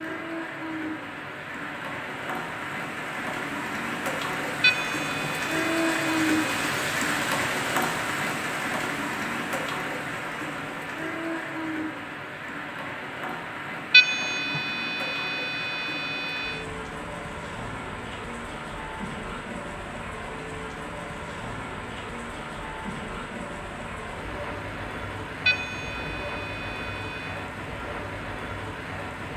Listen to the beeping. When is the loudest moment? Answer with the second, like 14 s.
14 s.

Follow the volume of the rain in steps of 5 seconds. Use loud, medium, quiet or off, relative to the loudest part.
medium, loud, medium, medium, medium, medium.